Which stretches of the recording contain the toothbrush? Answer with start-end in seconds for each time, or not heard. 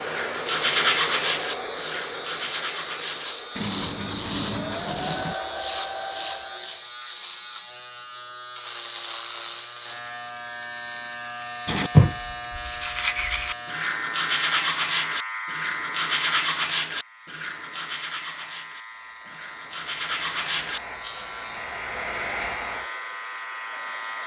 0.0-5.3, 11.7-20.8.